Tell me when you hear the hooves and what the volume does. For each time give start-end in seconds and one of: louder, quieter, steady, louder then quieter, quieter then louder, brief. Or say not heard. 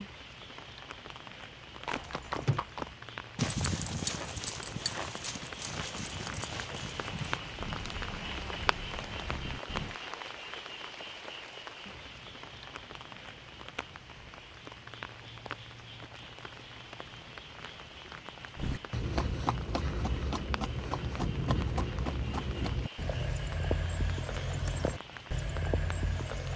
1.9-9.9 quieter
18.6-26.5 steady.